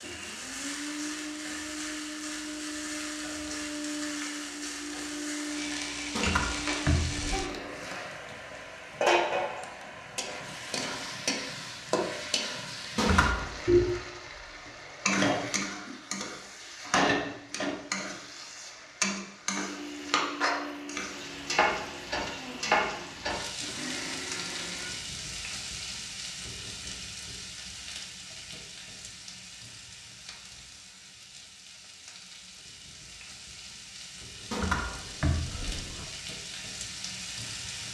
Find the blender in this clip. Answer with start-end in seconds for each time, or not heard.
0.0-7.8, 19.6-25.0.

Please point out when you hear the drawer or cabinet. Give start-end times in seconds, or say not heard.
6.2-7.5, 12.9-13.5, 34.5-36.0.